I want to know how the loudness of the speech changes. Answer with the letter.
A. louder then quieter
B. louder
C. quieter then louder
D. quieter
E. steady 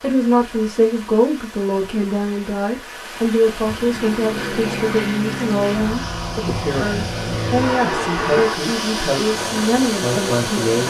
E.